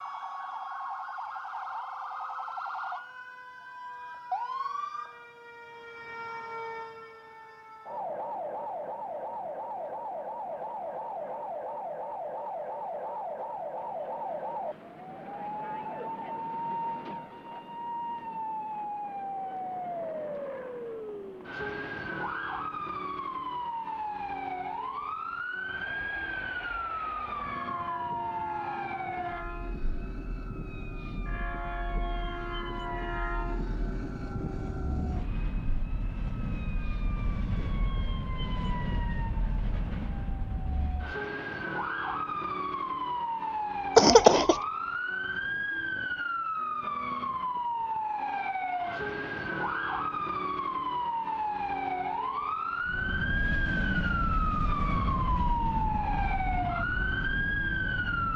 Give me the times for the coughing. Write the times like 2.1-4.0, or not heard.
44.0-44.6.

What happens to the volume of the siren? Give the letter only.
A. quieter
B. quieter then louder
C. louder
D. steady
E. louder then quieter
C.